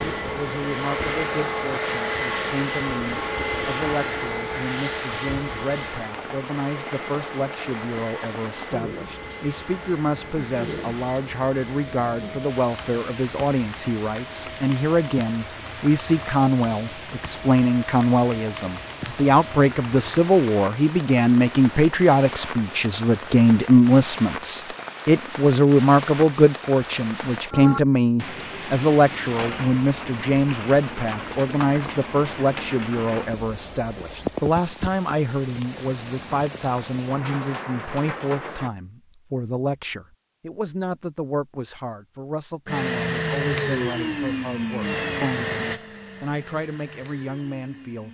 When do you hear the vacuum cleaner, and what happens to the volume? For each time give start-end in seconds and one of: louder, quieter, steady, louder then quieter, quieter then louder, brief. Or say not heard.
0.0-22.9 quieter
42.6-48.0 quieter.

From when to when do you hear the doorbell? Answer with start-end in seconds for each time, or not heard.
not heard.